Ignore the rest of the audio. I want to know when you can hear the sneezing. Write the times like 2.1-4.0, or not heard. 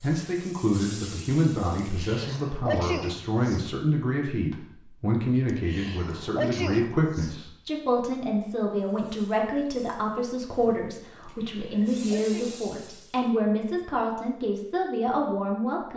1.8-3.6, 5.5-7.3, 11.2-13.1.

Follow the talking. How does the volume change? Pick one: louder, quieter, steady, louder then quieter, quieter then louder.
steady.